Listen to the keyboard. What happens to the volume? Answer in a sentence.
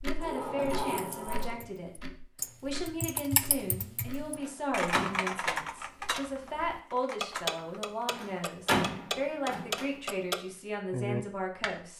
The loudness of the keyboard goes up, then down.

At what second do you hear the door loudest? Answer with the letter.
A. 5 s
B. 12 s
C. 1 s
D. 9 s
D.